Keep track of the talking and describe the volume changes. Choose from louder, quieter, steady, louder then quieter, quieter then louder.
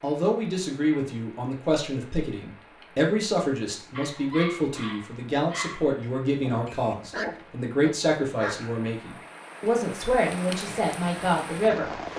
steady.